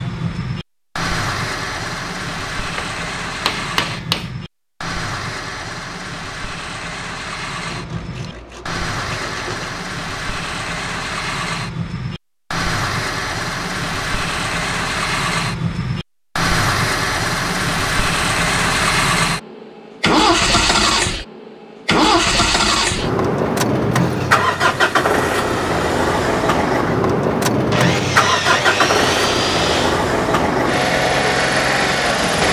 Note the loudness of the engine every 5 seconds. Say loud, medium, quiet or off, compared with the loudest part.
medium, medium, medium, loud, loud, loud, loud.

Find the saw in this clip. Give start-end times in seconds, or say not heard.
7.7-9.8, 27.7-30.1.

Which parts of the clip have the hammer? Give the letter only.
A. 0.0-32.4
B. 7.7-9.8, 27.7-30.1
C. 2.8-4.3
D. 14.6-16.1
C.